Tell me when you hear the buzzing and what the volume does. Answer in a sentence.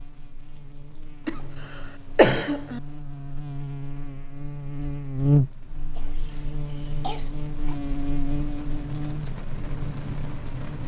The buzzing can be heard from 0.0 to 10.8 s, getting louder then quieter.